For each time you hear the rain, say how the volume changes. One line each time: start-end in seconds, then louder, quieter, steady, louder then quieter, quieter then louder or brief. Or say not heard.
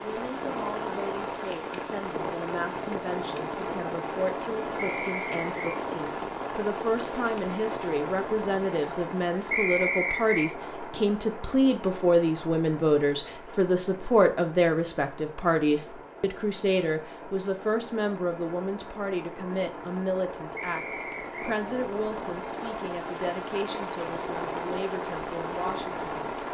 0.0-26.4 quieter then louder.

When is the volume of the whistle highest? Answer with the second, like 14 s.
10 s.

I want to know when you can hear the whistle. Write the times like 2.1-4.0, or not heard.
4.8-5.8, 9.5-10.5, 20.6-21.6.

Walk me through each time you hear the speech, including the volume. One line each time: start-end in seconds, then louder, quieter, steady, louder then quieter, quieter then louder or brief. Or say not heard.
0.0-26.2 louder then quieter.